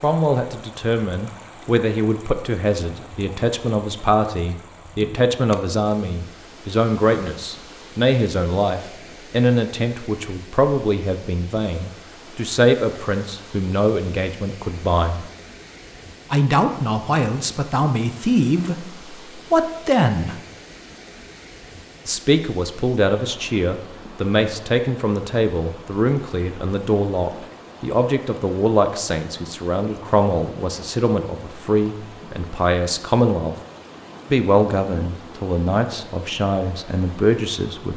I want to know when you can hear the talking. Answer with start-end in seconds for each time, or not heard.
0.0-15.3, 16.3-20.4, 22.1-33.5, 34.3-37.9.